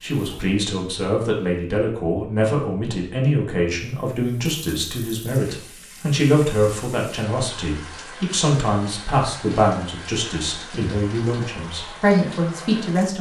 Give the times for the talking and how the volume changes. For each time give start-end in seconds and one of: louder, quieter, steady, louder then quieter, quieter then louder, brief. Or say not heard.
0.0-13.1 steady.